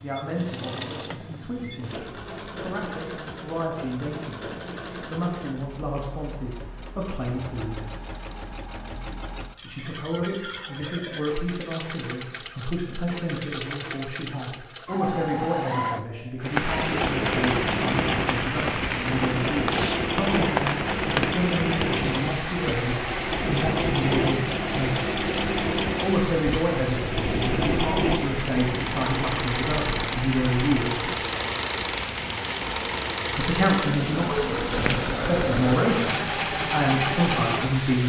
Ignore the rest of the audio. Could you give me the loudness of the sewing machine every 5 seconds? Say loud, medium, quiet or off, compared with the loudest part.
medium, quiet, medium, loud, loud, loud, loud, loud.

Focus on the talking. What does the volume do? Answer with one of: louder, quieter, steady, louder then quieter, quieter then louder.
louder.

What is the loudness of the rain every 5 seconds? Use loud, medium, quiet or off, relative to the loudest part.
off, off, off, loud, loud, medium, medium, medium.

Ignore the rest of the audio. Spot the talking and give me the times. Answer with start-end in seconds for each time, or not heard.
0.0-7.8, 9.6-25.1, 26.0-31.1, 33.4-38.0.